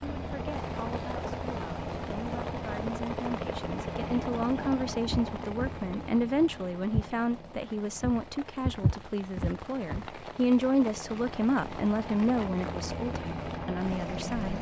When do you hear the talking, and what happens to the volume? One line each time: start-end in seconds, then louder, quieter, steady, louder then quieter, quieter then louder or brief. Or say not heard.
0.0-14.5 louder.